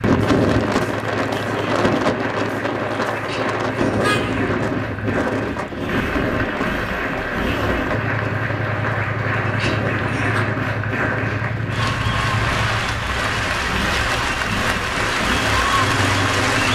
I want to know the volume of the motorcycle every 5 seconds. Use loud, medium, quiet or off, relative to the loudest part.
medium, loud, loud, loud.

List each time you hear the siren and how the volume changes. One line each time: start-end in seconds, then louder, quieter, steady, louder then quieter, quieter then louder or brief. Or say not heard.
not heard.